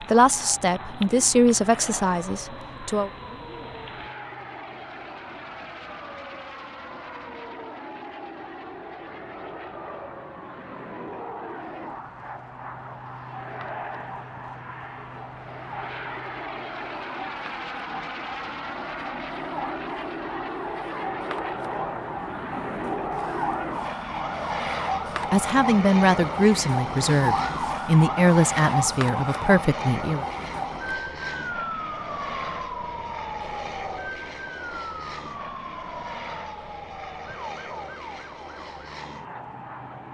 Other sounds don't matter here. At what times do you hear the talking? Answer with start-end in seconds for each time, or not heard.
0.1-3.1, 25.3-30.2.